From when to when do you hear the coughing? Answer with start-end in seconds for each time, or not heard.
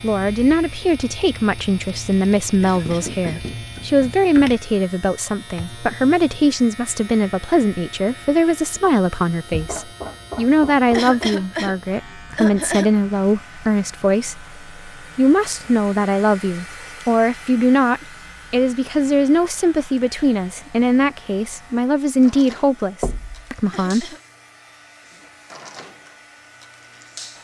2.6-3.5, 10.9-12.9, 23.7-24.2.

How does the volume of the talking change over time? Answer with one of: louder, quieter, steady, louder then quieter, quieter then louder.
steady.